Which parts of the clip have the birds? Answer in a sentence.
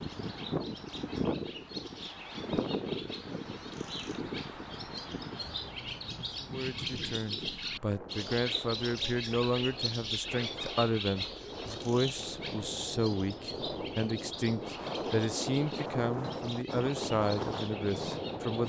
You can hear the birds from 0.0 to 18.6 s.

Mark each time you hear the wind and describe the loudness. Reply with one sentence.
The wind can be heard from 0.0 to 18.6 s, getting quieter then louder.